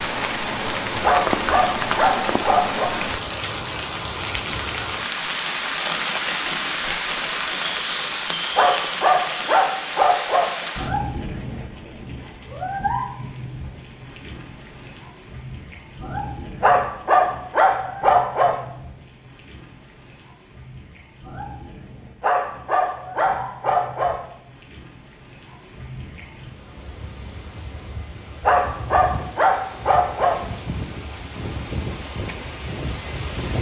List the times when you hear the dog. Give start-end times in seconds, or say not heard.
1.0-2.9, 8.6-10.5, 16.6-18.6, 22.2-24.1, 28.4-30.4.